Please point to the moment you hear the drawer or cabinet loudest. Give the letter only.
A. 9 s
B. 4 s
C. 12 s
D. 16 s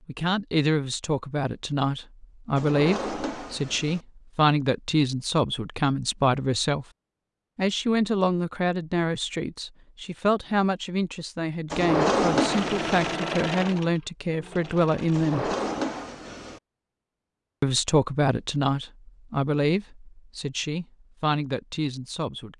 C.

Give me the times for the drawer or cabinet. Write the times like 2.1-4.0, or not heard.
2.5-4.0, 11.7-13.2, 15.1-16.6.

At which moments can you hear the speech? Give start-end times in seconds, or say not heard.
0.1-6.8, 7.5-15.5, 17.6-22.5.